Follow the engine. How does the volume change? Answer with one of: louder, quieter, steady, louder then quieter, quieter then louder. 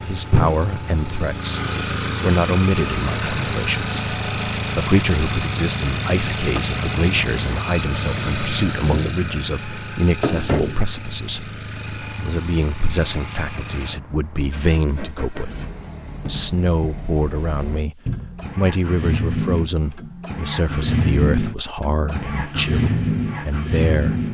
quieter then louder.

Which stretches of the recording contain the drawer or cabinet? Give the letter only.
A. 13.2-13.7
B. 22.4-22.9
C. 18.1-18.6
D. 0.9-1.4
C.